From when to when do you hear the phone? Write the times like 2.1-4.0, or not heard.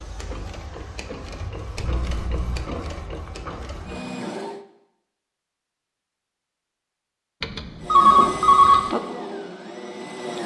1.8-2.8, 7.4-8.9.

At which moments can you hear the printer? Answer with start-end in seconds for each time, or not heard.
0.0-4.6, 7.8-10.4.